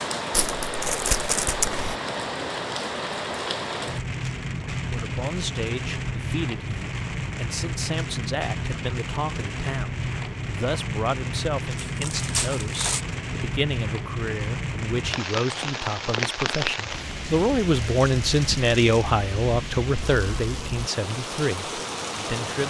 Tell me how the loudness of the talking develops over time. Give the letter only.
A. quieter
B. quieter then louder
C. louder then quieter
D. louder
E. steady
D.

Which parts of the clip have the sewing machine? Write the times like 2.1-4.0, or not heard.
not heard.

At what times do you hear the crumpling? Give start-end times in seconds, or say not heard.
0.3-1.9, 11.8-13.1, 17.8-19.1.